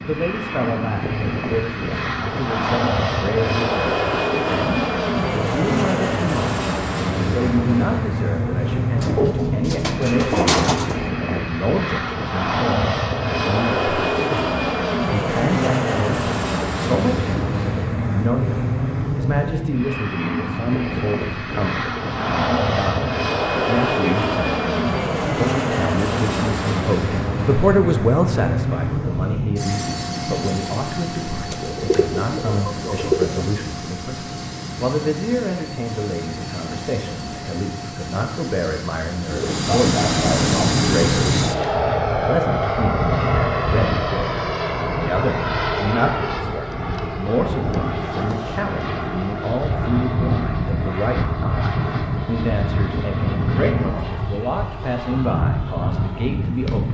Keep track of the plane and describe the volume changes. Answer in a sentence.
The volume of the plane stays about the same.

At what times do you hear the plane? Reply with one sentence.
You can hear the plane from 0.0 to 56.8 s.